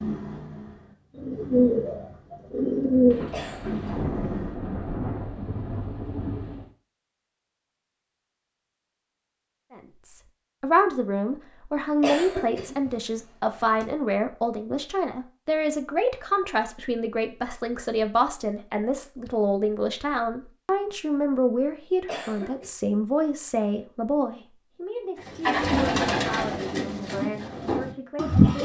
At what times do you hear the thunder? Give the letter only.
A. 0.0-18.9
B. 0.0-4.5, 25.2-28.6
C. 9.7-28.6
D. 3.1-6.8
D.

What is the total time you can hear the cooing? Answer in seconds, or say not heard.
8 s.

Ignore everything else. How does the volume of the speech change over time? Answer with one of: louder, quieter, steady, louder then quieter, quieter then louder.
quieter.